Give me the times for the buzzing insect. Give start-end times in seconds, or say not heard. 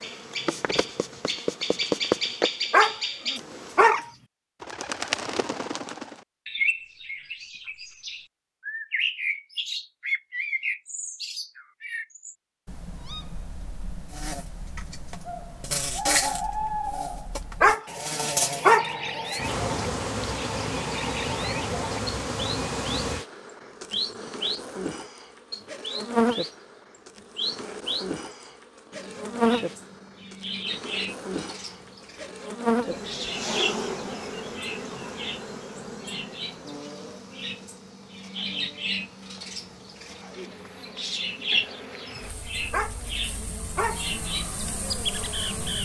0.0-4.0, 14.1-45.8.